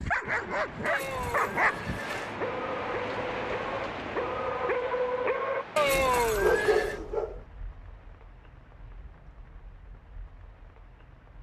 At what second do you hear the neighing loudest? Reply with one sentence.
The volume of the neighing peaks at 6 seconds.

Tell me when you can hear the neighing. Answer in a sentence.
You can hear the neighing from 0.8 to 2.4 s and from 5.8 to 7.0 s.